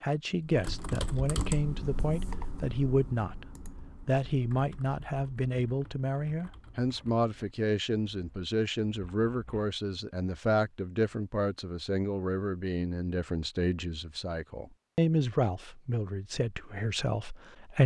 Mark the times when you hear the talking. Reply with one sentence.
The talking can be heard from 0.0 to 3.5 s and from 4.0 to 17.8 s.